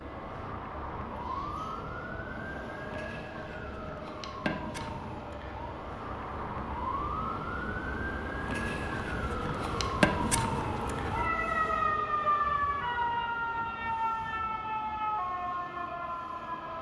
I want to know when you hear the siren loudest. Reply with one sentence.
The loudest moment of the siren is at 12 seconds.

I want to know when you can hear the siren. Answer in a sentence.
You can hear the siren from 0.0 to 16.7 s.